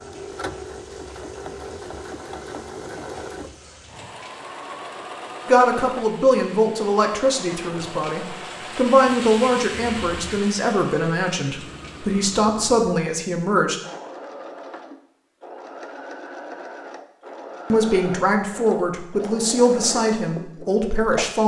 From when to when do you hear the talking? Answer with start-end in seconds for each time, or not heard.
5.5-13.8, 17.7-21.4.